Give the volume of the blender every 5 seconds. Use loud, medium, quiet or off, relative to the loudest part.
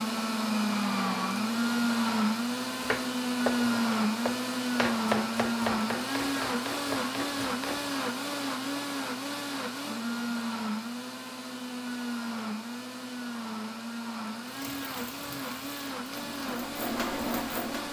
loud, loud, medium, medium.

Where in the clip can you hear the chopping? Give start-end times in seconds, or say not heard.
2.8-7.9.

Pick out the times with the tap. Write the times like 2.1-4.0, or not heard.
14.4-17.8.